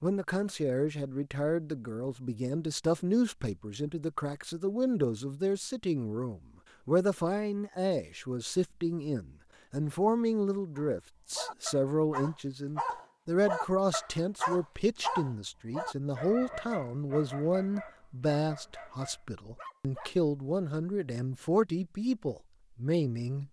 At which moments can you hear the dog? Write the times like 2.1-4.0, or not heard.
10.8-20.1.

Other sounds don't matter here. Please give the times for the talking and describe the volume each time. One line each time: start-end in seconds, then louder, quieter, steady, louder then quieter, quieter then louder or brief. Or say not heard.
0.0-23.4 steady.